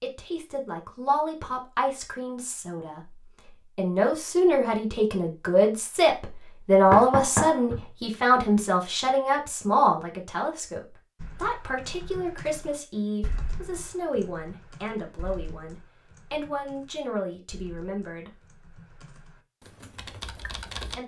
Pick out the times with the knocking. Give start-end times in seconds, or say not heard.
6.9-7.8.